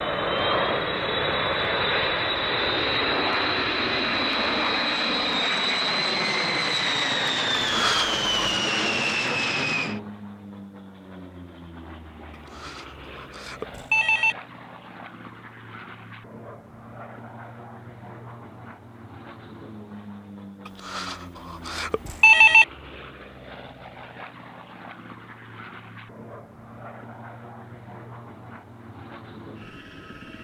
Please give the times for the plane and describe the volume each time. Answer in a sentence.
The plane can be heard from 0.0 to 30.3 s, getting quieter.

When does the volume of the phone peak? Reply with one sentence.
The volume of the phone peaks at 22 seconds.